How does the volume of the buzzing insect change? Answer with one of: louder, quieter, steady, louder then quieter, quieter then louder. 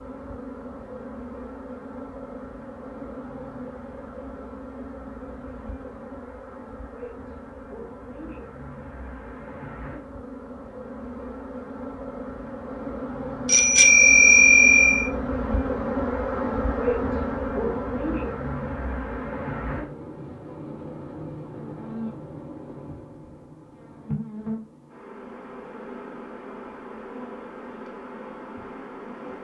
louder then quieter.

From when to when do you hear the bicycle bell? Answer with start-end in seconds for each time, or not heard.
13.4-15.1.